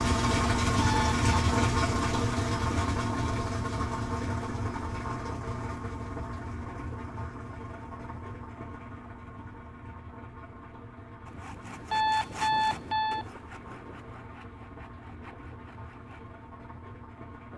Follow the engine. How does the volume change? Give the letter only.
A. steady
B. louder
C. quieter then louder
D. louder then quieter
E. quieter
E.